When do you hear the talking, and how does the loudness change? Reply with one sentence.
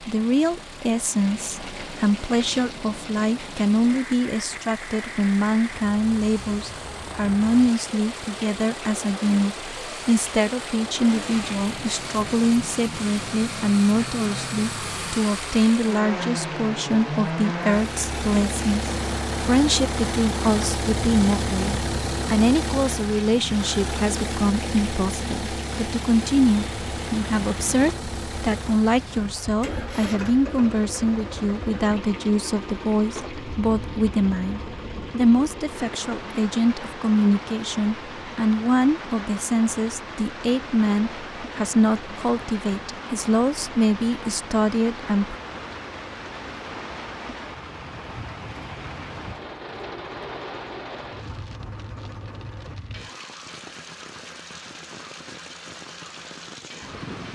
You can hear the talking from 0.0 to 45.4 s, at a steady volume.